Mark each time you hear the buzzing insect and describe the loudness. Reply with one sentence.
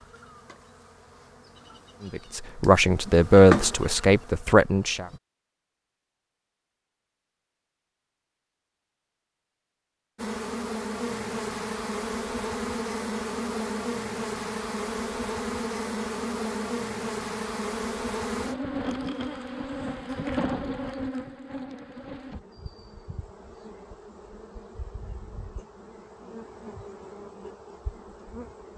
You can hear the buzzing insect from 0.0 to 5.2 s, getting louder then quieter; and from 10.2 to 28.7 s, getting quieter.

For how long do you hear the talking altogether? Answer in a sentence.
The talking can be heard for 3 seconds in total.